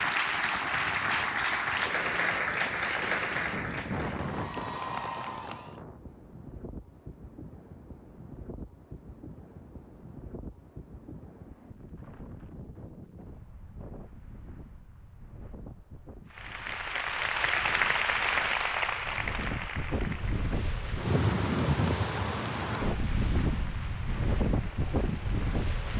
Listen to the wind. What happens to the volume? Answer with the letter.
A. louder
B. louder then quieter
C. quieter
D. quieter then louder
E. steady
D.